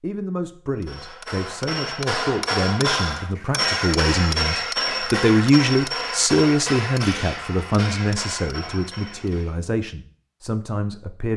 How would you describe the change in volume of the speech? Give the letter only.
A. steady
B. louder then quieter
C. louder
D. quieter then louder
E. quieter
B.